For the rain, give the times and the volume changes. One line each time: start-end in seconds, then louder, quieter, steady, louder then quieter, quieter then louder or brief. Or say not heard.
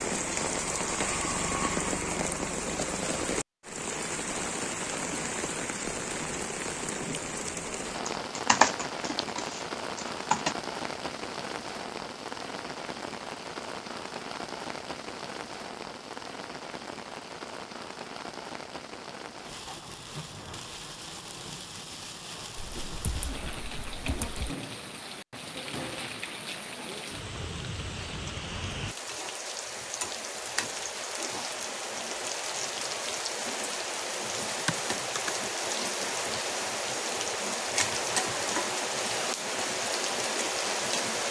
0.0-41.2 quieter then louder.